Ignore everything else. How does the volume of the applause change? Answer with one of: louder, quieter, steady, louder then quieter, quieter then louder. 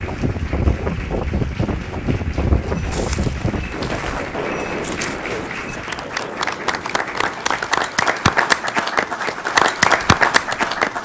louder.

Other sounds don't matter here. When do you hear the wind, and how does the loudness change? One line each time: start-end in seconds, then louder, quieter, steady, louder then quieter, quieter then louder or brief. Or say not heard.
0.0-11.0 quieter.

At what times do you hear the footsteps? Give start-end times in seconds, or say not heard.
2.8-5.8.